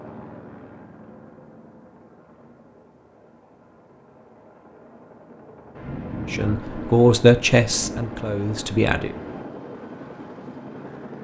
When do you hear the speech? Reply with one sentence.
You can hear the speech from 6.2 to 9.2 s.